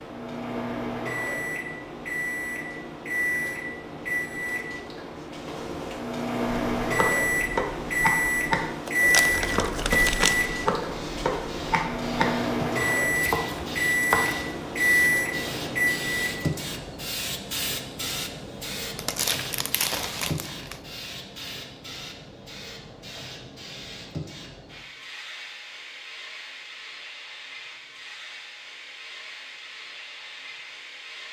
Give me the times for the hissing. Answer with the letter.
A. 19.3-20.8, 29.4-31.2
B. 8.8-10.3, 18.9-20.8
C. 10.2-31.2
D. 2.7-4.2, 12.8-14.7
C.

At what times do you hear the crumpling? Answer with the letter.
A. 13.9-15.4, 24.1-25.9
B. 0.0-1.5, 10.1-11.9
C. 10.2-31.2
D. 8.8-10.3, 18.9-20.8
D.